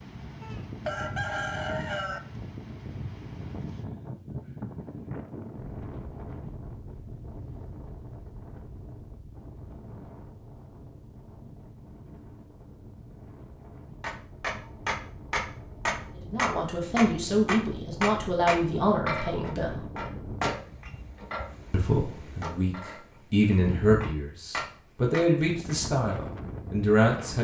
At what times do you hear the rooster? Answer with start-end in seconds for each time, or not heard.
0.4-2.2.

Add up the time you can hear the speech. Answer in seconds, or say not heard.
9 s.